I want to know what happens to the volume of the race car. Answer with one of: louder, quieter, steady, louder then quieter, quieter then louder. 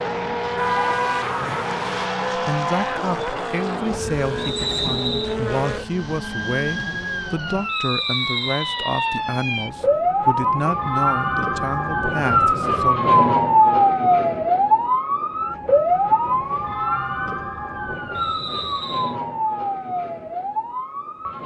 quieter.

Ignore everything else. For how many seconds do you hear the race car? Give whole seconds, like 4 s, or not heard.
8 s.